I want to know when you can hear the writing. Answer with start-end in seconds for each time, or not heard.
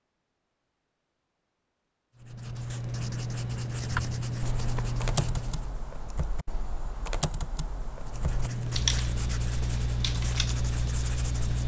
2.1-5.8, 8.0-11.6.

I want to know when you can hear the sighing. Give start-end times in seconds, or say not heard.
not heard.